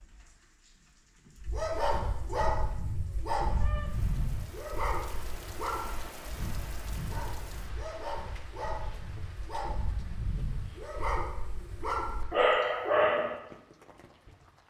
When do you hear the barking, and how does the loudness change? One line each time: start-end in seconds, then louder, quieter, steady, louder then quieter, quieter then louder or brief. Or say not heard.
1.4-13.4 quieter then louder.